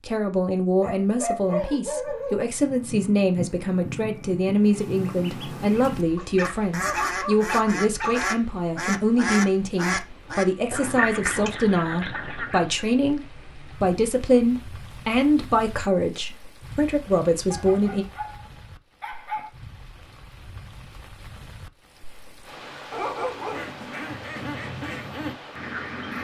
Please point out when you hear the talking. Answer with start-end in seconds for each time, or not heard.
0.1-18.1.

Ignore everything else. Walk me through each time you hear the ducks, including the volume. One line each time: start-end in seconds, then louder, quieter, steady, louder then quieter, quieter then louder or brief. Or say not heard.
2.4-12.8 louder
23.5-26.1 brief.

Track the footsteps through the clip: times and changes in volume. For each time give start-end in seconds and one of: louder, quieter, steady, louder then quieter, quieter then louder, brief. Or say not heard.
not heard.